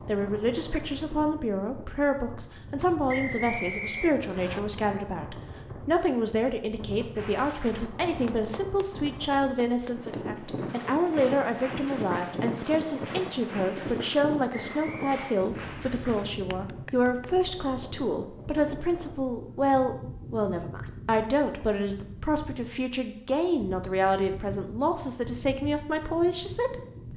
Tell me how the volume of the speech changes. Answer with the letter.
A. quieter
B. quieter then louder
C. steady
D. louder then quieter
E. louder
C.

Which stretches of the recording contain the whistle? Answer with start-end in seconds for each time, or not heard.
3.0-4.6, 14.5-15.4.